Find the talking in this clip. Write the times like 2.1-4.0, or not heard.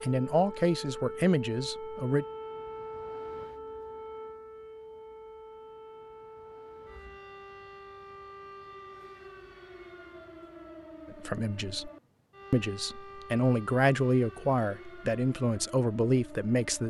0.0-2.2, 11.2-11.9, 12.5-16.8.